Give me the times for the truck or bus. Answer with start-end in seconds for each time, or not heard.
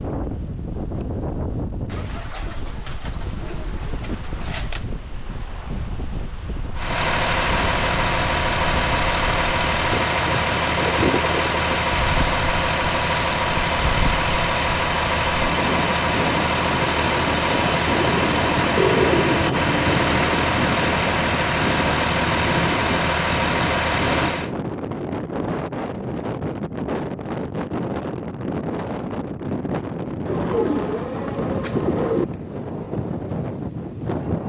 6.8-24.6.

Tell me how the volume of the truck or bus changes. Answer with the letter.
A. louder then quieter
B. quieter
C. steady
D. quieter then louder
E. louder
C.